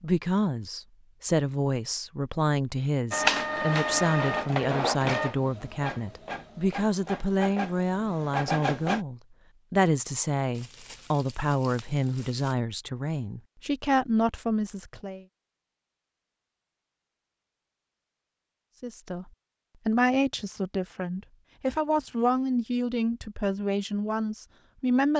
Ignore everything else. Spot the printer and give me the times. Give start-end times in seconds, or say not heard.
3.1-9.0.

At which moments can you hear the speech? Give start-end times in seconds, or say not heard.
0.0-15.2, 18.8-19.2, 19.9-25.1.